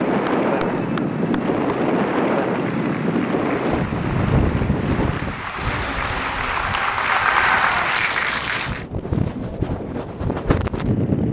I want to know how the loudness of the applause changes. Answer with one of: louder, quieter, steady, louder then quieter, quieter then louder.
louder.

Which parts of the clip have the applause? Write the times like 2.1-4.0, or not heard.
0.0-8.8.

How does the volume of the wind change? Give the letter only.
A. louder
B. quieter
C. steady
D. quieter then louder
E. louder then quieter
D.